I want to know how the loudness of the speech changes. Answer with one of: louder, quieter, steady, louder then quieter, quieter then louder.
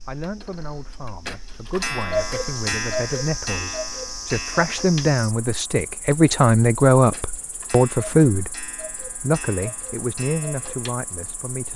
louder then quieter.